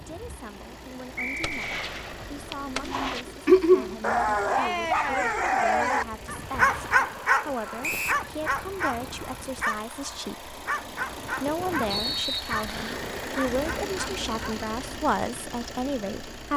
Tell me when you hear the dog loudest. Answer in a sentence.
The volume of the dog peaks at 4 seconds.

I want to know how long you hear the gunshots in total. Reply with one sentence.
The gunshots can be heard for 2 seconds in total.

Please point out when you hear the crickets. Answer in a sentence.
You can't hear the crickets here.